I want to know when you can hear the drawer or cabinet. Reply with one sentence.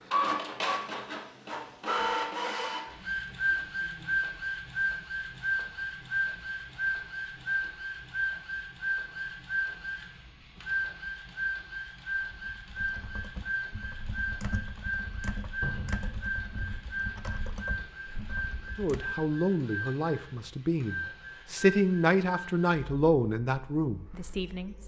The drawer or cabinet can be heard from 15.6 to 16.0 s.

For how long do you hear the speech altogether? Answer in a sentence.
You can hear the speech for 6 seconds altogether.